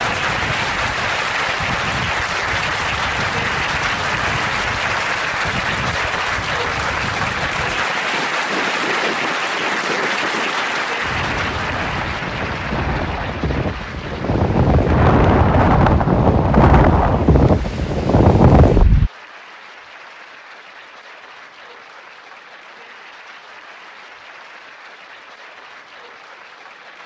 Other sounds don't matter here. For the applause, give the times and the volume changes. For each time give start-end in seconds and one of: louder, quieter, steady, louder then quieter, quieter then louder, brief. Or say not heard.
0.0-27.0 quieter.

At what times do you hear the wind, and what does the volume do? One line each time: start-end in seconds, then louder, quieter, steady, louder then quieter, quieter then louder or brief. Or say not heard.
0.0-19.1 louder.